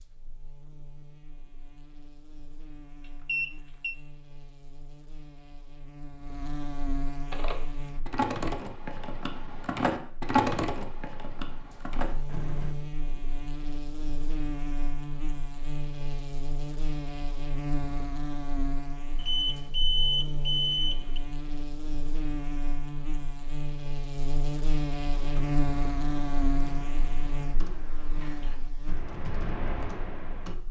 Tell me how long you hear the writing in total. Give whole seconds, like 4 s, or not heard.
not heard.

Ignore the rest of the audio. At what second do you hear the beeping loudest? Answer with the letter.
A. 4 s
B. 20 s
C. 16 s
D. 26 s
B.